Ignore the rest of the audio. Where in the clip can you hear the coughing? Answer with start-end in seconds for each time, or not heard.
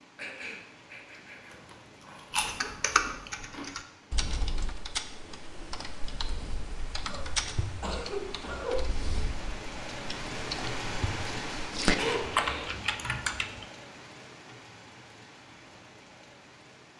0.1-2.1, 7.0-9.1, 11.9-12.8.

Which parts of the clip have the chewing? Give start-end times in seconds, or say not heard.
1.5-3.7.